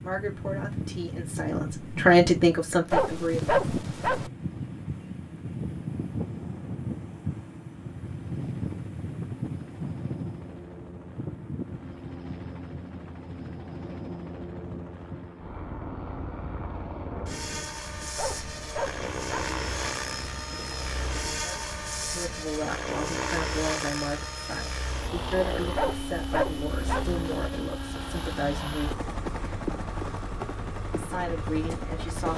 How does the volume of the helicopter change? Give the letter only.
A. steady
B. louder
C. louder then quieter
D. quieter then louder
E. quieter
B.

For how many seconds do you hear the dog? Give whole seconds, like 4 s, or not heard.
4 s.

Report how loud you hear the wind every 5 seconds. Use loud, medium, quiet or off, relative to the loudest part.
loud, loud, medium, medium, medium, off, off.